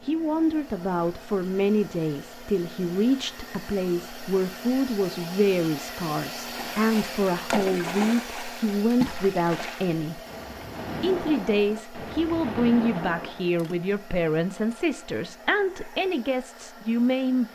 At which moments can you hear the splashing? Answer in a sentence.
The splashing can be heard from 6.4 to 13.8 s.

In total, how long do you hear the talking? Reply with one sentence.
The talking can be heard for 17 seconds in total.